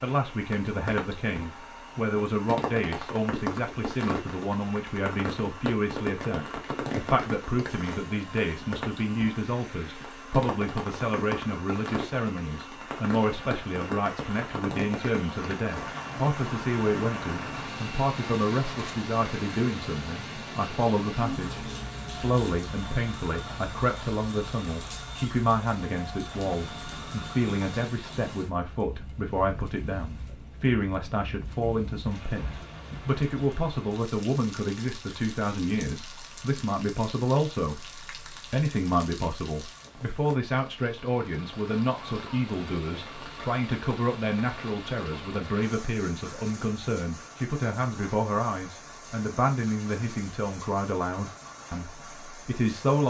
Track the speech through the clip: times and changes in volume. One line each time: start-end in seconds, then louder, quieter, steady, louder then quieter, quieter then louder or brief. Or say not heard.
0.0-53.0 steady.